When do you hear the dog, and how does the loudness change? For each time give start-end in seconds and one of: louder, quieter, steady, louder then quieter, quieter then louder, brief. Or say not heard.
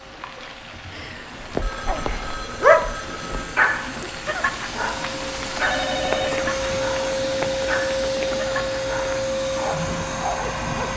1.6-10.9 quieter.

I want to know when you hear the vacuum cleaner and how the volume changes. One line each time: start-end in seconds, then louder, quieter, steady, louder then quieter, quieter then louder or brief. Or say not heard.
0.0-10.9 louder.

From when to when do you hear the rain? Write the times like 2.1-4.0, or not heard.
0.0-9.2.